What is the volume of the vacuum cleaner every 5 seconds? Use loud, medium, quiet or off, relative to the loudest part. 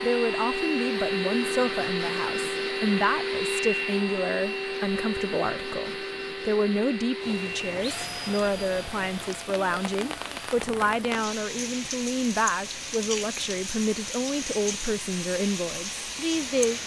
loud, medium, quiet, quiet.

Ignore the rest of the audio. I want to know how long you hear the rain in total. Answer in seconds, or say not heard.
10 s.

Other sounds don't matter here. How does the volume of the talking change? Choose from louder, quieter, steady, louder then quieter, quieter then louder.
steady.